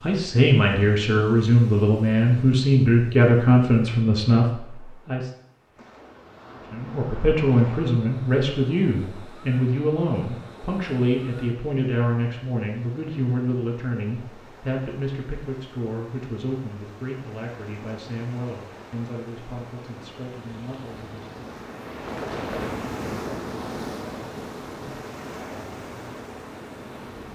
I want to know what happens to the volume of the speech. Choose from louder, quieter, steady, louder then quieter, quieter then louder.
quieter.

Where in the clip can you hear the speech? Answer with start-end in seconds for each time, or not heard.
0.0-5.3, 6.7-21.5.